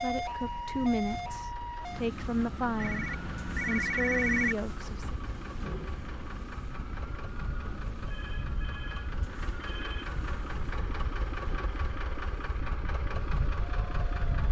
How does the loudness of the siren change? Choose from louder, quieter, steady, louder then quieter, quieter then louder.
quieter.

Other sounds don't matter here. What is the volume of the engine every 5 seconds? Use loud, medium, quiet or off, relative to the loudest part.
medium, medium, loud.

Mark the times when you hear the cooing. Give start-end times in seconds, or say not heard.
not heard.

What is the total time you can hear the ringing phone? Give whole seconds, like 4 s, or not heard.
4 s.